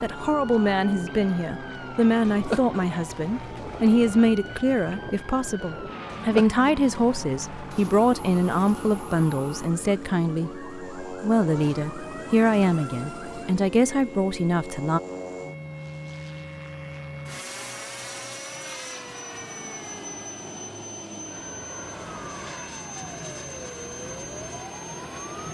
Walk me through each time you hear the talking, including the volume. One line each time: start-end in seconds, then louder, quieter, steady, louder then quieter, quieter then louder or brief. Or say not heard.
0.0-15.0 steady.